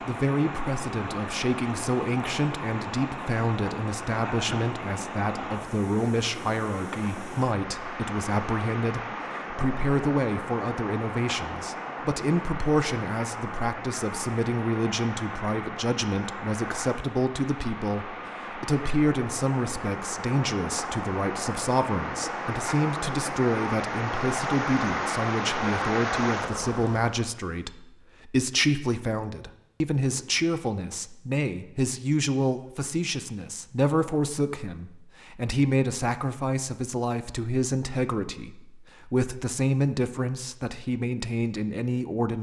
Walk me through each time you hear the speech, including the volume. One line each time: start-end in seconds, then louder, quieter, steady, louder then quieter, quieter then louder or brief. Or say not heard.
0.0-42.3 steady.